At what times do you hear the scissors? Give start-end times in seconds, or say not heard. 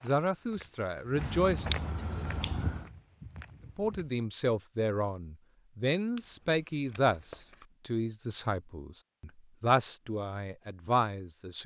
1.1-2.9, 6.2-7.7.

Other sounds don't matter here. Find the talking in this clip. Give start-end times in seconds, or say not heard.
0.0-1.6, 3.8-11.6.